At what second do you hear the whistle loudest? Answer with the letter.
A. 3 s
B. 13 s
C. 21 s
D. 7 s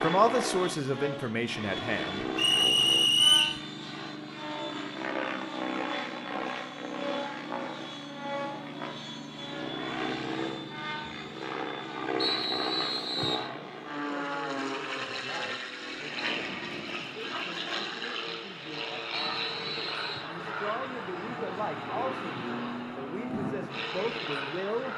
A.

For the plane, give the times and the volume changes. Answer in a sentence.
The plane can be heard from 0.0 to 24.9 s, at a steady volume.